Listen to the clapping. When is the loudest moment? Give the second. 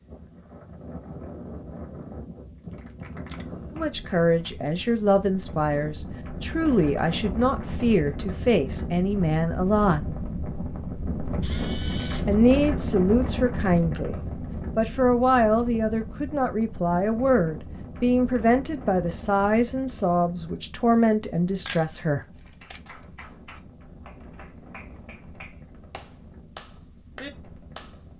27 s.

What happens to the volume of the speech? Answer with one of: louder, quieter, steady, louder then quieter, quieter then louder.
steady.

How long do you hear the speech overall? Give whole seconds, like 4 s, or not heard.
16 s.